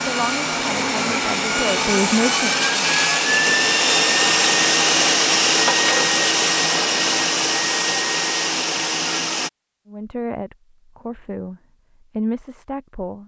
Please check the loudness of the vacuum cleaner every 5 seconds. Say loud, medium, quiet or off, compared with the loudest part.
loud, loud, off.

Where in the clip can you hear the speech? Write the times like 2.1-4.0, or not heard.
0.1-2.6, 9.8-13.2.